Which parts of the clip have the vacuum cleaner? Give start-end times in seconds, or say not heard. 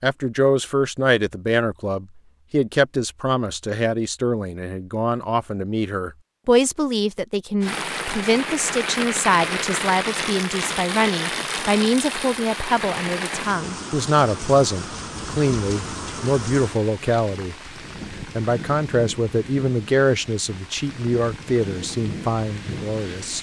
not heard.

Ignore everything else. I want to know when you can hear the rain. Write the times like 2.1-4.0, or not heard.
7.6-23.3.